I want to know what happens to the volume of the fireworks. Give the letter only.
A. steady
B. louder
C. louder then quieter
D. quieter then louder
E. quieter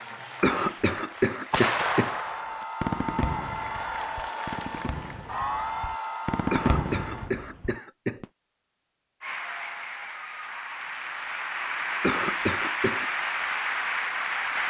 D.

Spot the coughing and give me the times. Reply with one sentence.
The coughing can be heard from 0.4 to 2.1 s, from 6.5 to 8.2 s and from 12.0 to 13.1 s.